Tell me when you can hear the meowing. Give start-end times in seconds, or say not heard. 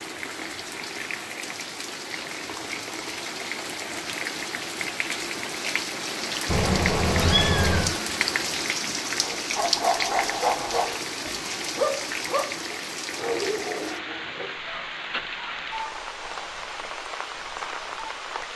6.5-8.0.